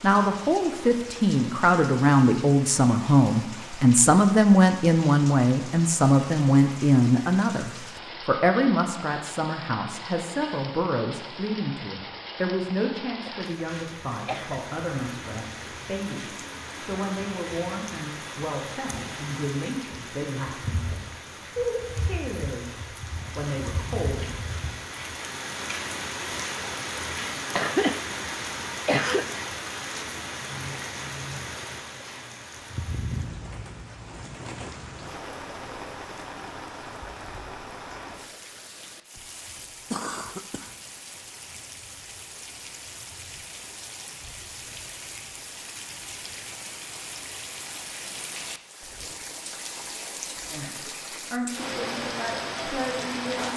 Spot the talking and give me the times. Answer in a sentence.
You can hear the talking from 0.0 to 24.4 s and from 50.5 to 53.5 s.